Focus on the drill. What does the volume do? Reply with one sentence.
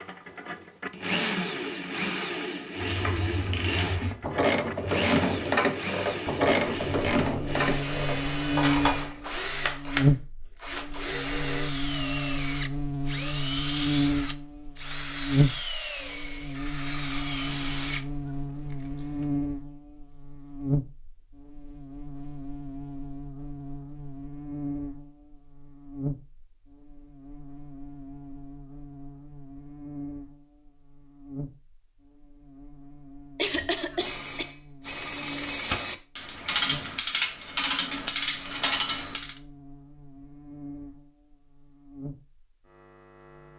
The volume of the drill stays about the same.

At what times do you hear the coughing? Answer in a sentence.
You can hear the coughing from 33.4 to 34.5 s.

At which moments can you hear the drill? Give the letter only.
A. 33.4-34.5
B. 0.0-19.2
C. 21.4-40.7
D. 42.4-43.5
B.